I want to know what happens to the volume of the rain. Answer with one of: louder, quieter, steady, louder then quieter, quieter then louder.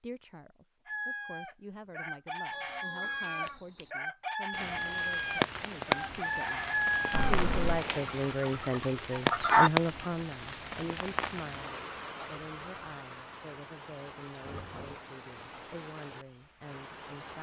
quieter.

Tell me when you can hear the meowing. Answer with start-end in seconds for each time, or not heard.
2.5-3.9, 7.1-7.8, 14.4-15.0.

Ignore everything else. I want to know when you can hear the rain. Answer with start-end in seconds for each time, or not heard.
4.5-17.3.